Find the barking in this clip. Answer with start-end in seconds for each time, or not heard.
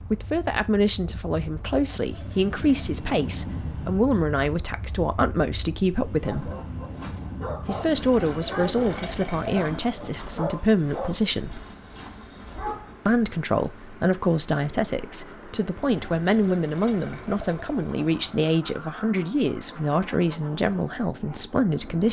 6.2-12.9.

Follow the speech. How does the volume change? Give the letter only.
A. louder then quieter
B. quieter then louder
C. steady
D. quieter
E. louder
C.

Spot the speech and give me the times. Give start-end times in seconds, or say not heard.
0.1-6.5, 7.6-11.6, 13.1-22.0.